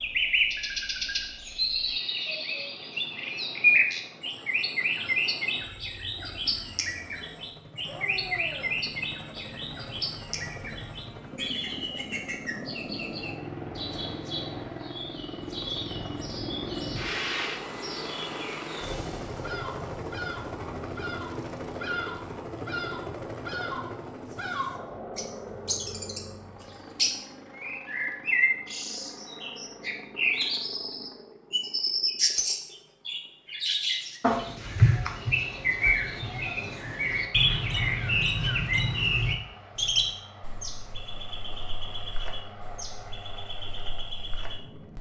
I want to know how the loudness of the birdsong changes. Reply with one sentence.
The loudness of the birdsong goes down, then up.